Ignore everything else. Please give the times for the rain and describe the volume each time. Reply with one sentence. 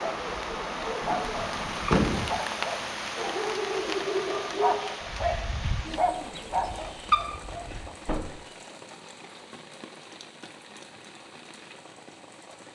The rain can be heard from 0.0 to 12.7 s, getting quieter.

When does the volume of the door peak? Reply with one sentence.
The loudest moment of the door is at 2 seconds.